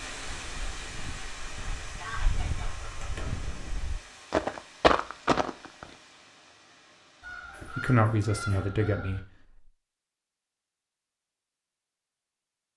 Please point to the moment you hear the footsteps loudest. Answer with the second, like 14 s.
5 s.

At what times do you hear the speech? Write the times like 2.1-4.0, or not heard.
7.7-9.2.